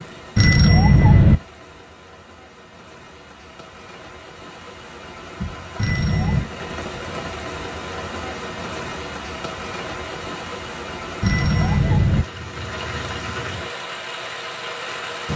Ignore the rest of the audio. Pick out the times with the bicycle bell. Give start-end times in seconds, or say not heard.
0.3-1.4, 5.8-6.5, 11.2-12.2.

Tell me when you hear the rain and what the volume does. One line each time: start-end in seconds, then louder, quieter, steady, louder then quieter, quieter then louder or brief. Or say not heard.
0.0-15.3 louder.